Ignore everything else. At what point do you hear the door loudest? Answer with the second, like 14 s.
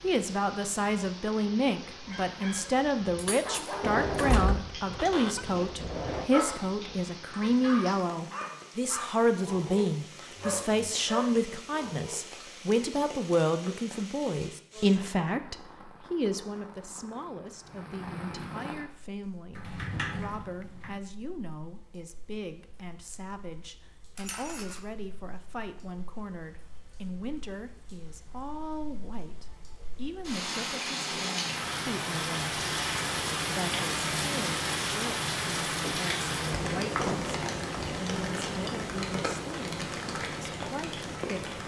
4 s.